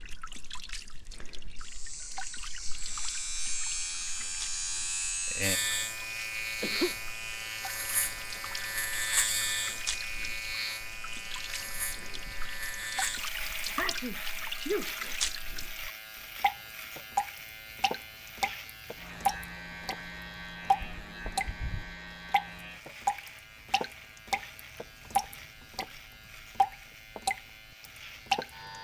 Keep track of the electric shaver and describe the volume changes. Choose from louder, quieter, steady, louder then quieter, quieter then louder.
quieter.